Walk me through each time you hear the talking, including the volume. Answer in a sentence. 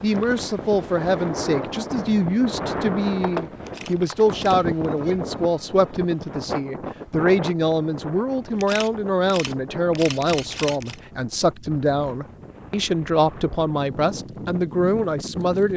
The talking can be heard from 0.0 to 15.7 s, at a steady volume.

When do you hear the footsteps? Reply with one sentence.
You can't hear the footsteps here.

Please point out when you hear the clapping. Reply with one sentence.
The clapping can't be heard in this clip.